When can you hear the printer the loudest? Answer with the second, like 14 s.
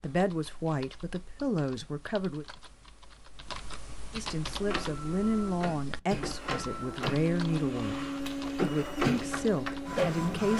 10 s.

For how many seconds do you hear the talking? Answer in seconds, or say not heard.
9 s.